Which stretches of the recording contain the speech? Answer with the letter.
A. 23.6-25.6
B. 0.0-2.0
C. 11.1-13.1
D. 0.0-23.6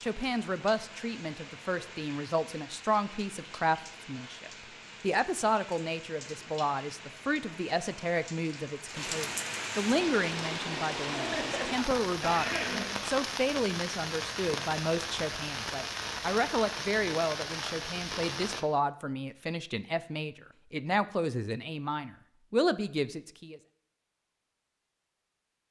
D.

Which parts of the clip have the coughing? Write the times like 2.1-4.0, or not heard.
11.1-13.1.